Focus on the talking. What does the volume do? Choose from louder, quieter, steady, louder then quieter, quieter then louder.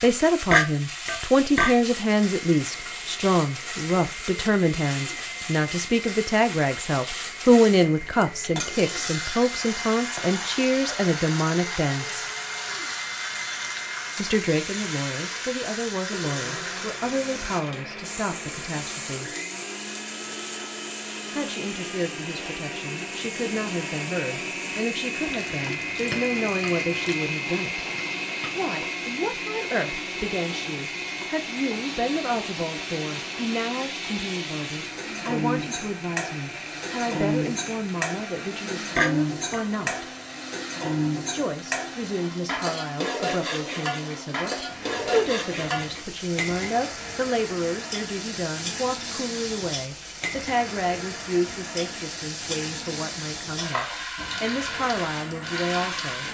quieter.